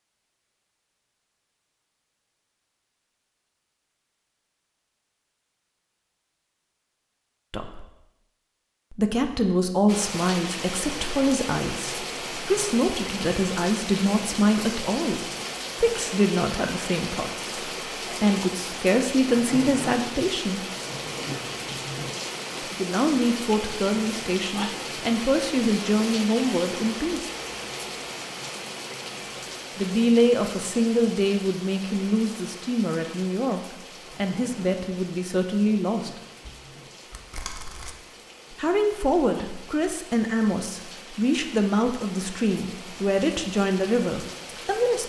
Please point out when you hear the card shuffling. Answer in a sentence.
You can hear the card shuffling from 36.4 to 38.0 s.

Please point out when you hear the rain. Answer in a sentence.
The rain can be heard from 9.8 to 45.0 s.